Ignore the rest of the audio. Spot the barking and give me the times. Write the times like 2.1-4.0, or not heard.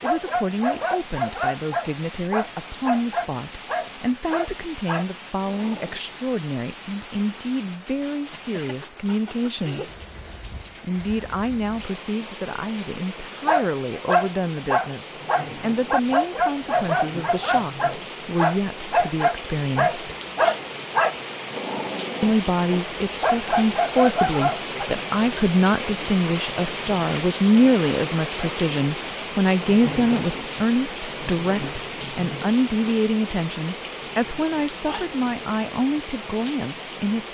0.0-6.0, 13.4-24.9.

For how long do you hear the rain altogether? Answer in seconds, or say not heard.
37 s.